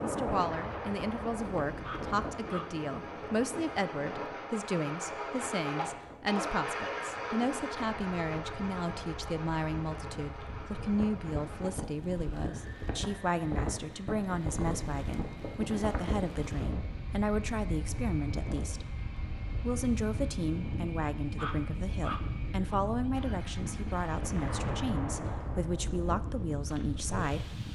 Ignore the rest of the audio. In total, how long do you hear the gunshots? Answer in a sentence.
You can hear the gunshots for 4 seconds altogether.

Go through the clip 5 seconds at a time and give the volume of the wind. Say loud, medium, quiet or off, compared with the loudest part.
loud, medium, loud, loud, loud, loud.